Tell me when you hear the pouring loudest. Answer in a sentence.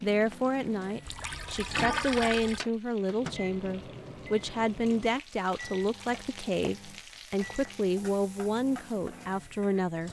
The loudest moment of the pouring is at 2 seconds.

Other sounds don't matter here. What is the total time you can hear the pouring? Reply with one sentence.
The pouring can be heard for 2 seconds in total.